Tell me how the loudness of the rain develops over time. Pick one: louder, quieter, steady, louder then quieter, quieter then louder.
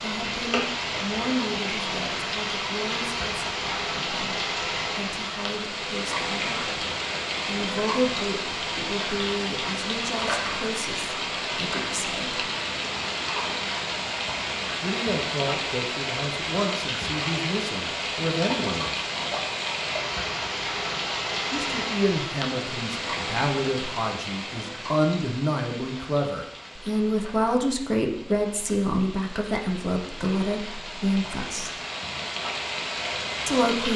quieter.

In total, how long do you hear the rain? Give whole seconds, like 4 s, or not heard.
34 s.